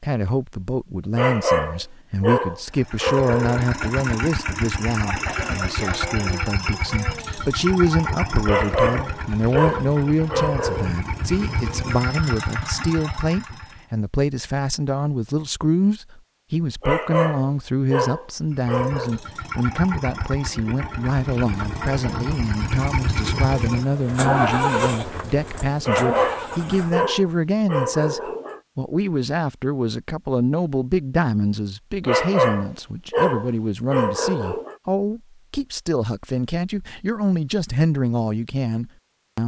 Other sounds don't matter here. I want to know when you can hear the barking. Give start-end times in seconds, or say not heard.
1.1-3.6, 8.4-10.9, 16.8-19.2, 25.9-28.6, 32.0-34.8.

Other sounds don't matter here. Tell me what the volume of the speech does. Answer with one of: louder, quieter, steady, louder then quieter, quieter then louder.
steady.